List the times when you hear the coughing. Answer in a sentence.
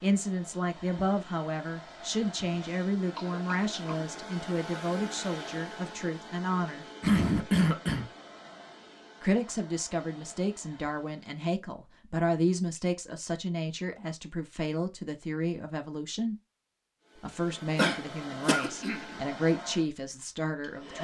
The coughing can be heard from 3.1 to 4.1 s, from 7.0 to 8.1 s and from 17.8 to 19.1 s.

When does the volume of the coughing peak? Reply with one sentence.
The volume of the coughing peaks at 7 seconds.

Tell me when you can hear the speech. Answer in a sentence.
You can hear the speech from 0.0 to 6.8 s, from 9.2 to 16.4 s and from 17.2 to 21.0 s.